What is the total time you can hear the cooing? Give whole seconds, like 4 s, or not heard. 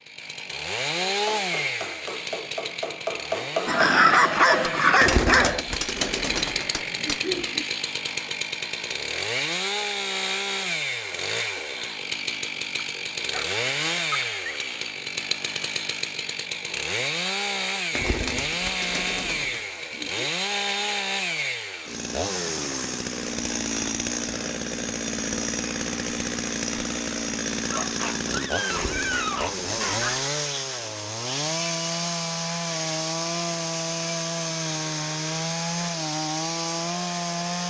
7 s.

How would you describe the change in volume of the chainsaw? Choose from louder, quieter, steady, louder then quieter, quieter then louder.
steady.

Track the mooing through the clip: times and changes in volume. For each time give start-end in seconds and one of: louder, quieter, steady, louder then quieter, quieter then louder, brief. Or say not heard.
not heard.